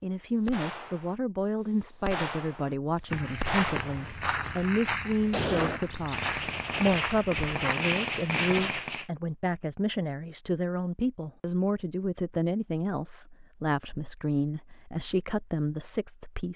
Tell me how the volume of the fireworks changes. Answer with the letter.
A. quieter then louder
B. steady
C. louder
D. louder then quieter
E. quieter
C.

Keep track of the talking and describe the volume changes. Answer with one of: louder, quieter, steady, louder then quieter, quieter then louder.
steady.